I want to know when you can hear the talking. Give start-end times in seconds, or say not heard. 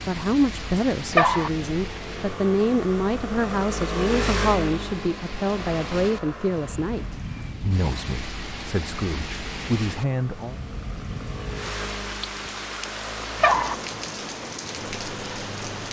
0.1-10.6.